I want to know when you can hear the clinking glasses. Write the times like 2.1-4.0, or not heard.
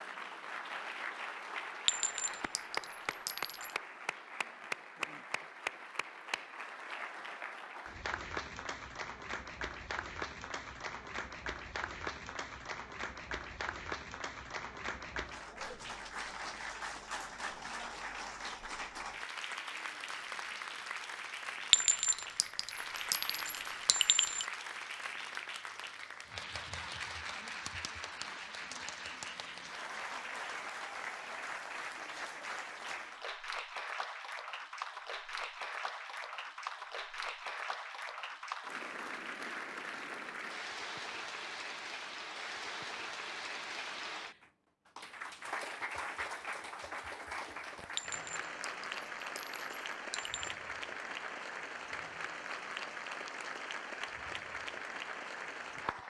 1.9-3.8, 21.7-24.4, 48.0-50.5.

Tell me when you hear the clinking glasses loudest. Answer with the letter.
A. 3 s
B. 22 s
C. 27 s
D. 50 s
B.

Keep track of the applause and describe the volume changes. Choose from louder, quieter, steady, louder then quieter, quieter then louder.
steady.